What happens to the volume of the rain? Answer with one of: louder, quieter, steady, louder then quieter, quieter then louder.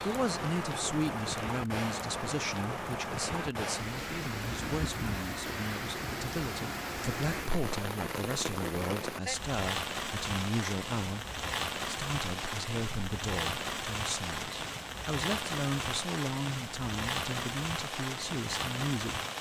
steady.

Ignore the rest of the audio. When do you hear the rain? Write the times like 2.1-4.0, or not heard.
0.0-19.3.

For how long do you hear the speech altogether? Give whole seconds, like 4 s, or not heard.
19 s.